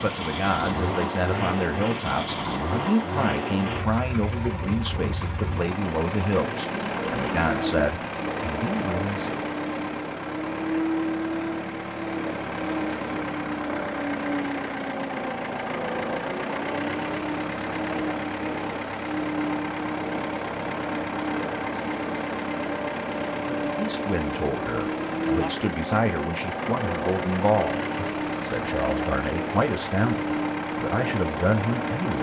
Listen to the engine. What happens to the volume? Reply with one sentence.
The loudness of the engine stays about the same.